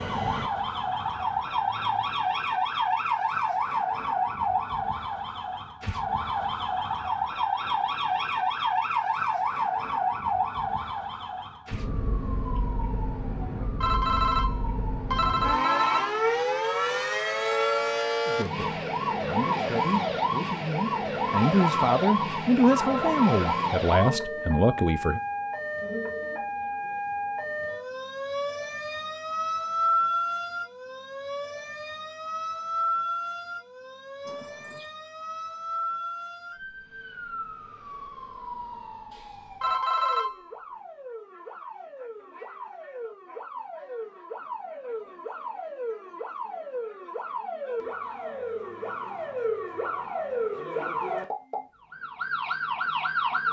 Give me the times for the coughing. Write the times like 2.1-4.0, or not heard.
34.2-34.9.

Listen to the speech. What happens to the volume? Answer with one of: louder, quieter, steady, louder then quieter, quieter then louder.
louder.